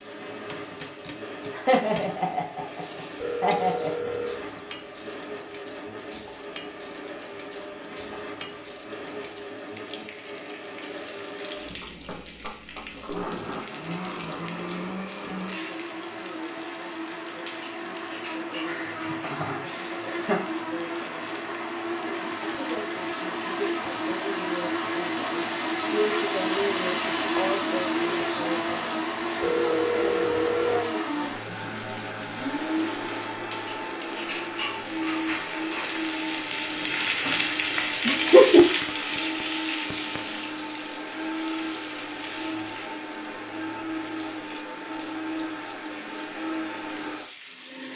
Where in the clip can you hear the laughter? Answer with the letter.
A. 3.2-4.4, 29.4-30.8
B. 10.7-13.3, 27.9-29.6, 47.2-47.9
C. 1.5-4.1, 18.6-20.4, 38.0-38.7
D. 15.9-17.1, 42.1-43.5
C.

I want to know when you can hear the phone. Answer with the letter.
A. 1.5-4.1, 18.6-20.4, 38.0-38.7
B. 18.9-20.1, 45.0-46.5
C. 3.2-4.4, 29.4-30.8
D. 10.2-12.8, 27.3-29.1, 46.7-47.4
C.